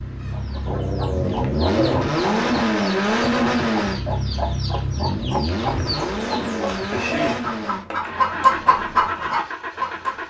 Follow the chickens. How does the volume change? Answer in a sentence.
The volume of the chickens goes up.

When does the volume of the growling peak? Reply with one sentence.
The loudest moment of the growling is at 2 seconds.